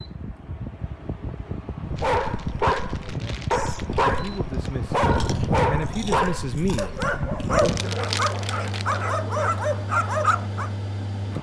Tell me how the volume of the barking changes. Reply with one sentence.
The volume of the barking stays about the same.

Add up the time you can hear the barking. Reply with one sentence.
You can hear the barking for 9 seconds altogether.